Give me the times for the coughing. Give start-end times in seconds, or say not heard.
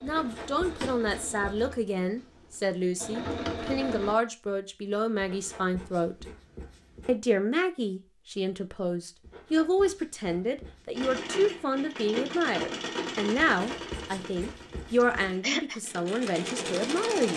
15.0-15.8.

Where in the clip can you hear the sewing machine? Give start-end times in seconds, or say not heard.
0.0-4.2, 10.9-17.3.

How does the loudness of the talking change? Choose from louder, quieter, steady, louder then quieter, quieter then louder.
steady.